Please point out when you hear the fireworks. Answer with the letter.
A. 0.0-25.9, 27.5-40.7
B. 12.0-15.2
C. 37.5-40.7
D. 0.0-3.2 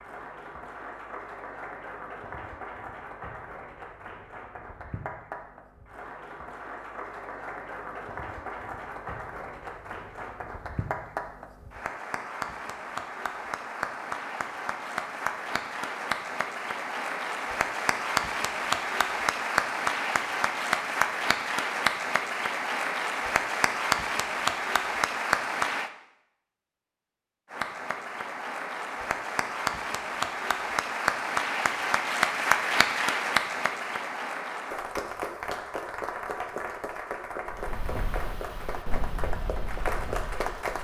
C.